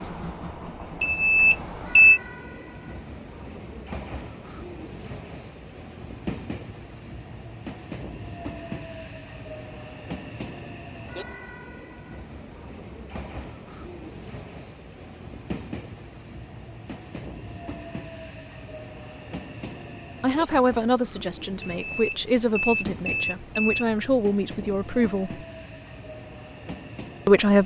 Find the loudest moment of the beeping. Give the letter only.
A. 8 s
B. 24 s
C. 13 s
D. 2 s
D.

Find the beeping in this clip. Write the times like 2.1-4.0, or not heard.
1.0-2.2, 21.6-23.9.